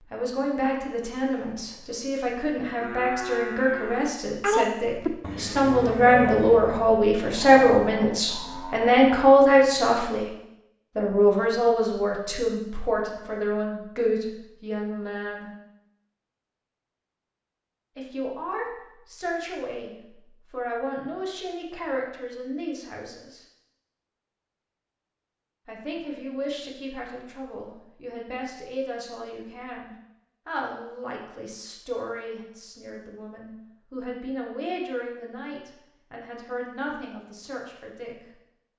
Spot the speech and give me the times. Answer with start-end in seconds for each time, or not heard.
0.0-10.3, 10.9-15.5, 17.9-23.4, 25.6-38.1.